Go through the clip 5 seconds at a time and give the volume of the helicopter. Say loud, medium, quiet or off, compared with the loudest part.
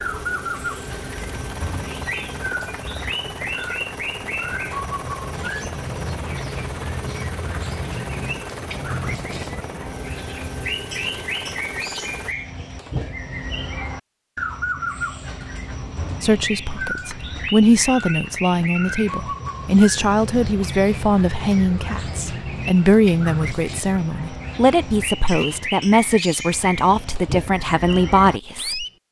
loud, loud, loud, off, off, off.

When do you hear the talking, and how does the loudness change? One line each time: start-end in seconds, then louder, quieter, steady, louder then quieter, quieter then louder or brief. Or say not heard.
16.2-28.9 steady.